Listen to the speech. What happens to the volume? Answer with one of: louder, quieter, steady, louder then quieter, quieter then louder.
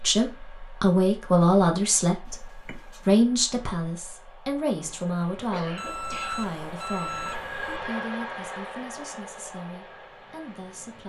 quieter.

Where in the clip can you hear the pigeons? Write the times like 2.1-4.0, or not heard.
not heard.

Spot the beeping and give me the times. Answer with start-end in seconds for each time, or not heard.
2.2-3.2, 5.8-7.8.